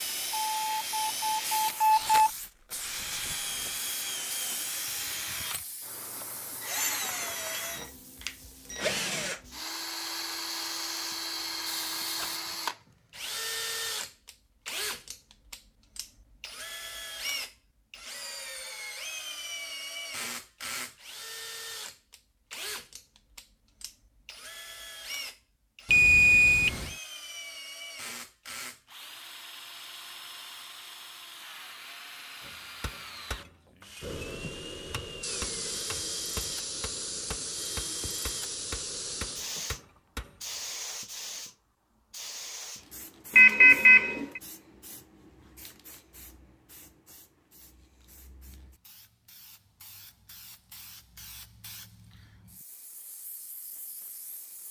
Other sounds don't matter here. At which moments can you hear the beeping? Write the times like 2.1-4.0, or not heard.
0.3-2.3, 25.9-26.9, 43.4-44.4.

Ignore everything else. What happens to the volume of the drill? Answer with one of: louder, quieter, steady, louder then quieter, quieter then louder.
quieter.